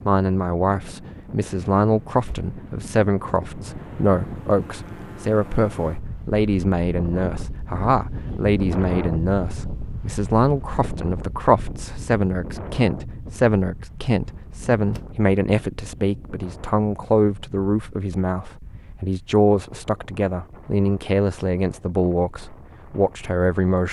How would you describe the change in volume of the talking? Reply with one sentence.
The loudness of the talking stays about the same.